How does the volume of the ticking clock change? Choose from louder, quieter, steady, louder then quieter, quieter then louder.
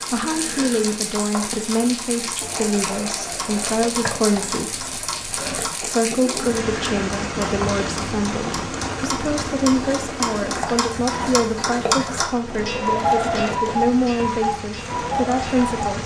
louder.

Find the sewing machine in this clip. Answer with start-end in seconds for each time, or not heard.
2.4-16.0.